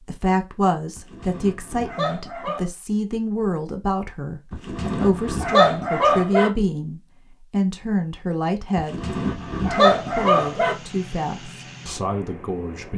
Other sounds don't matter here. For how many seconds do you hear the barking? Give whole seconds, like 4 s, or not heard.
6 s.